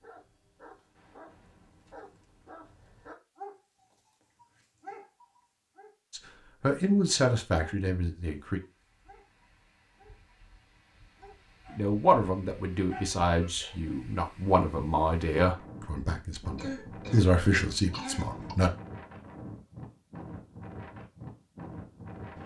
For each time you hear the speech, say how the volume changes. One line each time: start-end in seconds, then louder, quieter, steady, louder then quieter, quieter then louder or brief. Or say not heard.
6.1-8.6 brief
11.7-18.7 quieter then louder.